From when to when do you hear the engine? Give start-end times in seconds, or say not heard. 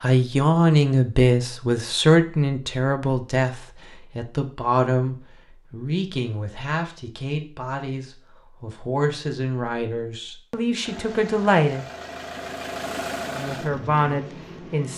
10.8-14.9.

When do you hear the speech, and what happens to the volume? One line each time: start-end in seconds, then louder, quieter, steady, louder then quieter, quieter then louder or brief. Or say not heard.
0.0-11.8 quieter
13.3-14.9 brief.